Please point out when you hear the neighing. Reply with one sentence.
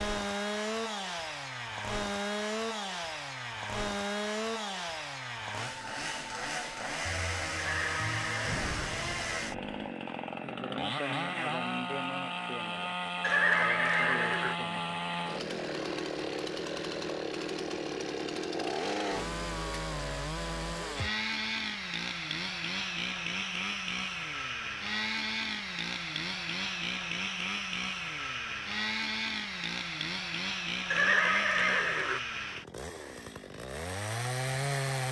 You can hear the neighing from 7.5 to 8.7 s, from 13.2 to 14.6 s and from 30.9 to 32.2 s.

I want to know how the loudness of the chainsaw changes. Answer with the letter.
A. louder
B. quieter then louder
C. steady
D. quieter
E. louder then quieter
C.